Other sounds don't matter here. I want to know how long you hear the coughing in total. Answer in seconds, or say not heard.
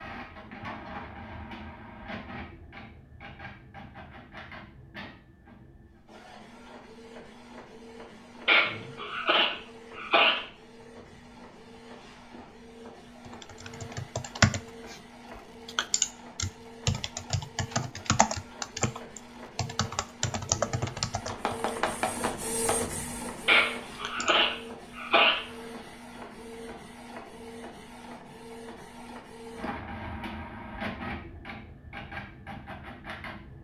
4 s.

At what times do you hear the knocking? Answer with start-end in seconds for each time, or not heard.
21.2-22.9.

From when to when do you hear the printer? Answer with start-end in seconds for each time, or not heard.
0.0-33.6.